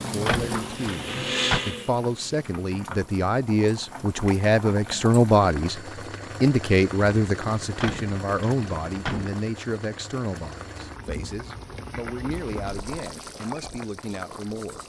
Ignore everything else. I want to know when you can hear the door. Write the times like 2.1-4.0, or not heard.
0.2-1.6, 7.8-9.3.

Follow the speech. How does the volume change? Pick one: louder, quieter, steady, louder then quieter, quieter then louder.
louder then quieter.